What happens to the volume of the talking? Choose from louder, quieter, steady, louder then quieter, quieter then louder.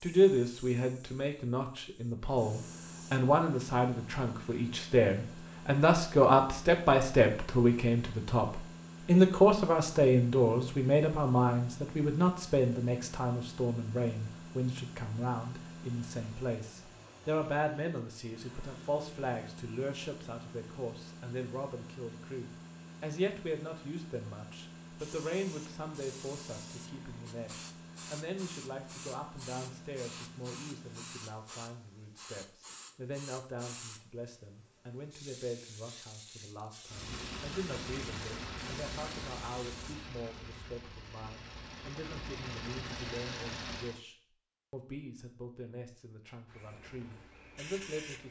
quieter.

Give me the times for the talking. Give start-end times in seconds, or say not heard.
0.0-48.2.